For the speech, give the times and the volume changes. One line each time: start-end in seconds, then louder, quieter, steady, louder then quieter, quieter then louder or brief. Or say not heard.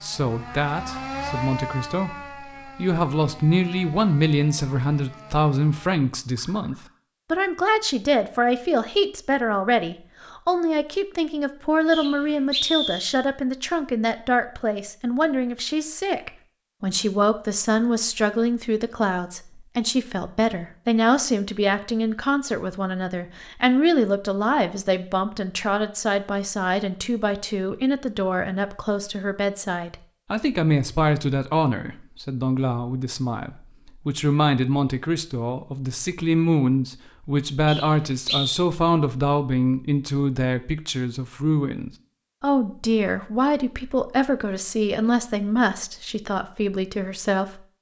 0.0-47.6 steady.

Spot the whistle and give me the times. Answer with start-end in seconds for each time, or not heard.
11.9-13.2, 37.6-38.5.